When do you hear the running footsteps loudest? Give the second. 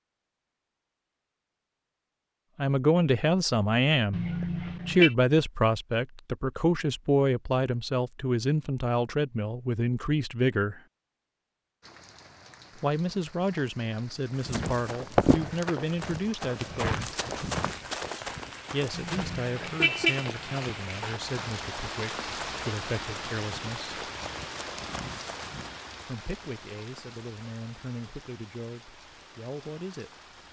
15 s.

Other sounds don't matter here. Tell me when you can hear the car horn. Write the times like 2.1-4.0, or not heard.
4.1-5.2, 18.9-20.3.